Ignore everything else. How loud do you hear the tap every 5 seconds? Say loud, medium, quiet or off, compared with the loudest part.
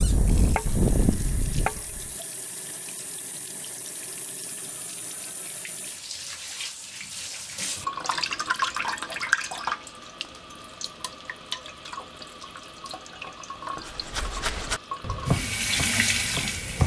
quiet, loud, medium, loud.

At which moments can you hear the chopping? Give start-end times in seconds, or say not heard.
0.0-2.1, 13.8-16.8.